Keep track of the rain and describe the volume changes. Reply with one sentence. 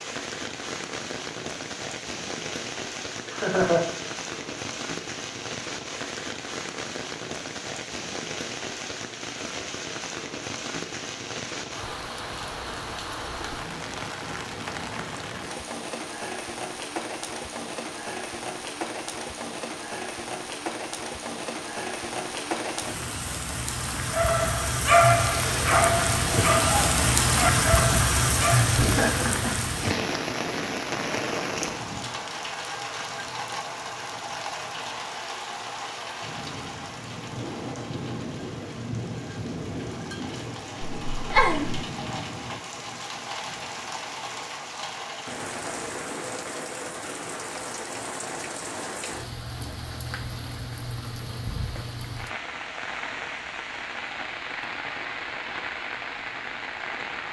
The volume of the rain goes up, then down.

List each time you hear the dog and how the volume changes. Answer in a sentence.
You can hear the dog from 24.1 to 28.6 s, getting quieter.